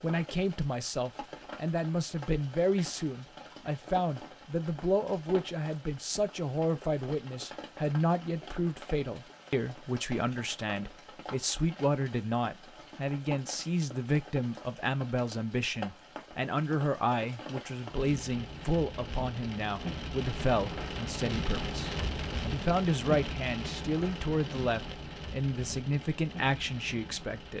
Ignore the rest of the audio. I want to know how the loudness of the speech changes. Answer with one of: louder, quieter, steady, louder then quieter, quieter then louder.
steady.